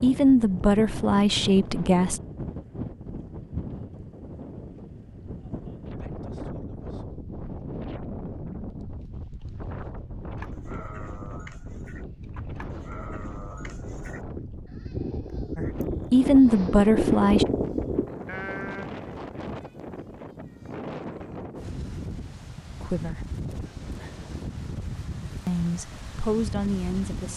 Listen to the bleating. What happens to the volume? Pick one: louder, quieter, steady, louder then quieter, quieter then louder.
louder.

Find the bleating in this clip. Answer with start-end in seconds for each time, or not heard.
10.2-18.9.